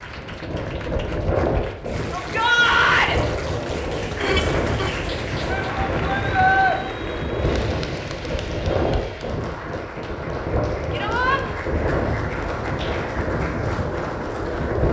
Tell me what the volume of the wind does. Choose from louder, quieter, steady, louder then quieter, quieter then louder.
steady.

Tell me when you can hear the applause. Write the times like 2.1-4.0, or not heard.
0.0-14.8.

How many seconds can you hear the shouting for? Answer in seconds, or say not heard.
3 s.